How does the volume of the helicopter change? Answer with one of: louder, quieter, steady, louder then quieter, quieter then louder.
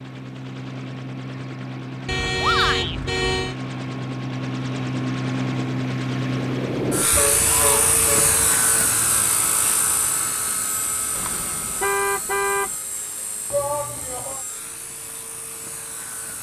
louder then quieter.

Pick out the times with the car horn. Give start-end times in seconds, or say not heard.
2.0-3.5, 7.1-8.3, 11.2-12.8.